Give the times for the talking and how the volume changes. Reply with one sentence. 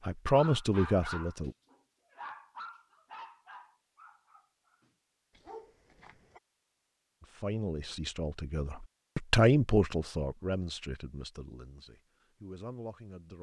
The talking can be heard briefly from 0.1 to 1.6 s; and from 7.2 to 13.3 s, getting louder then quieter.